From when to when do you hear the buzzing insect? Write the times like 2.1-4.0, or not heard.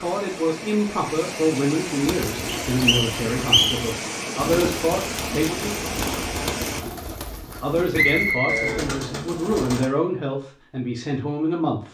not heard.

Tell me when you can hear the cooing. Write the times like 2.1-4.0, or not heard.
2.0-9.9.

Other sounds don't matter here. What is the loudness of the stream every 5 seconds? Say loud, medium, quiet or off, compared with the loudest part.
loud, loud, off.